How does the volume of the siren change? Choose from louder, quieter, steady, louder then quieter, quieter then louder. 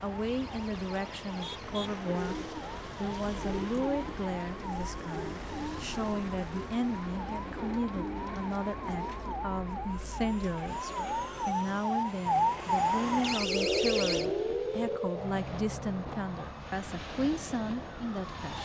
louder then quieter.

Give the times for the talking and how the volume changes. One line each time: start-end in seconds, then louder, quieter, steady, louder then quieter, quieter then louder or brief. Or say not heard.
0.0-18.6 steady.